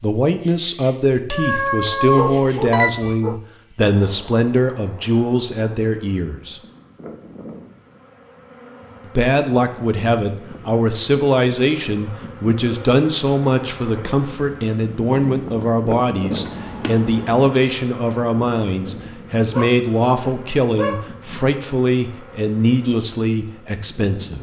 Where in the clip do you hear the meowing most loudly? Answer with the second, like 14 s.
2 s.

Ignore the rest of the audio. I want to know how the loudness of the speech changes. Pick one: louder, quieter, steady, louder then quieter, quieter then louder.
steady.